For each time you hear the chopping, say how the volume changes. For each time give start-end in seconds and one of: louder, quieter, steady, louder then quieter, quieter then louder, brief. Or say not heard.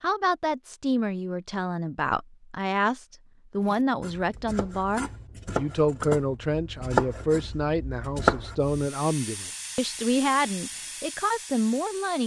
3.6-8.8 louder.